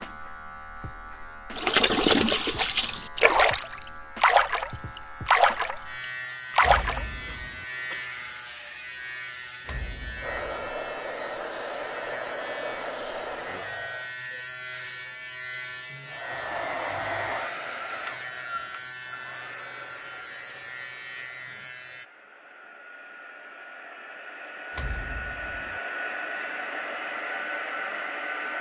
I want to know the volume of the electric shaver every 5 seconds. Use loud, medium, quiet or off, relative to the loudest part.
medium, loud, loud, loud, loud, off.